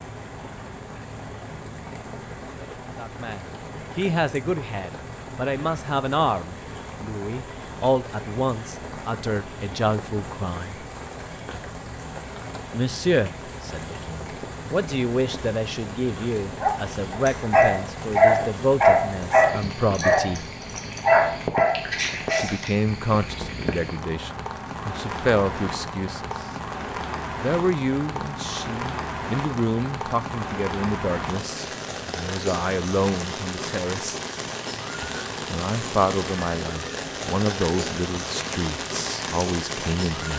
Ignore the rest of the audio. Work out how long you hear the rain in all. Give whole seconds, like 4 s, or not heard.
40 s.